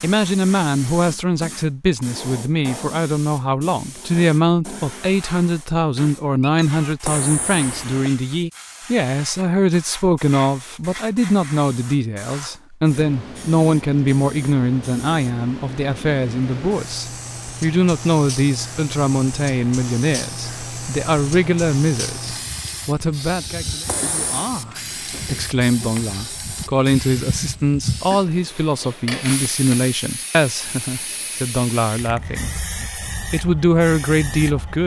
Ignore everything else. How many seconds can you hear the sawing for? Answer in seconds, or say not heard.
not heard.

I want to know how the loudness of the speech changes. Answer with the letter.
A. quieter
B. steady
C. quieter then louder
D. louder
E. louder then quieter
B.